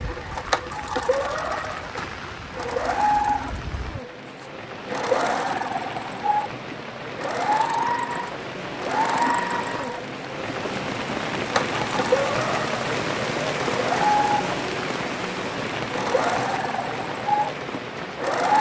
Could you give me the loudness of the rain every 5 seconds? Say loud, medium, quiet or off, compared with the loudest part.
medium, medium, loud, loud.